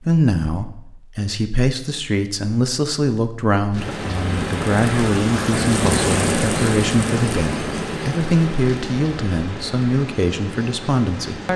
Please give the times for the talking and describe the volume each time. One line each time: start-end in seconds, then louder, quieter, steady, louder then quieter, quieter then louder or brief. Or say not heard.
0.0-11.5 steady.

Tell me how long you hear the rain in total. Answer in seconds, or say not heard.
8 s.